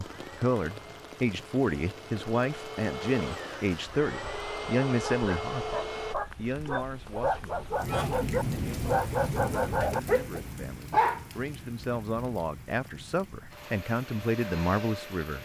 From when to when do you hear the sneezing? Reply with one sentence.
You can't hear the sneezing here.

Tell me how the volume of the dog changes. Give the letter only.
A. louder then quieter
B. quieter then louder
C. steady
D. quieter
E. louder
E.